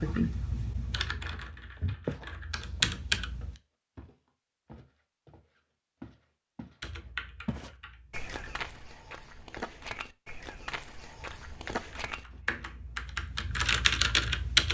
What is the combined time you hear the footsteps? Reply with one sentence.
The footsteps can be heard for 11 seconds in total.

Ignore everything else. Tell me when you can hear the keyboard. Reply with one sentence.
You can hear the keyboard from 0.0 to 3.5 s, from 6.8 to 8.7 s and from 11.2 to 14.6 s.